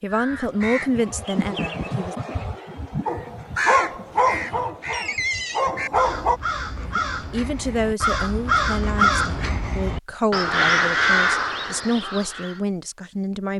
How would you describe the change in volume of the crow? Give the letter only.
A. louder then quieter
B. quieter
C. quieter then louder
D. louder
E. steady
D.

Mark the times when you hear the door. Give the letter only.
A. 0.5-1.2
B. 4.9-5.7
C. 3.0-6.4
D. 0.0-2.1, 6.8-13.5
B.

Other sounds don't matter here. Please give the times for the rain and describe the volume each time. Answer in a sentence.
You can't hear the rain here.